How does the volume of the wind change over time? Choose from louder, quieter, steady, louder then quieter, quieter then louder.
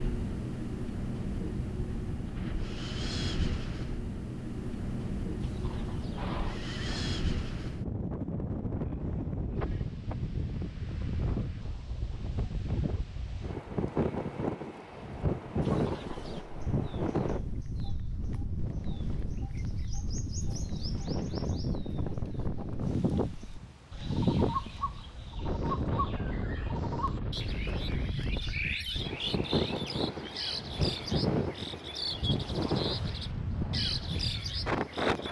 steady.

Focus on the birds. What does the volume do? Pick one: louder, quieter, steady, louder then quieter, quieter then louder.
louder.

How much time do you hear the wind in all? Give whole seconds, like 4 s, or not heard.
35 s.